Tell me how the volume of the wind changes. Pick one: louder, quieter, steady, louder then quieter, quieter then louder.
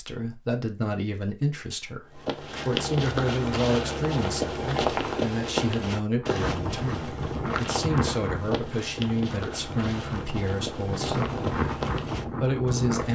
quieter then louder.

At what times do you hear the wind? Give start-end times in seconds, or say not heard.
6.2-13.0.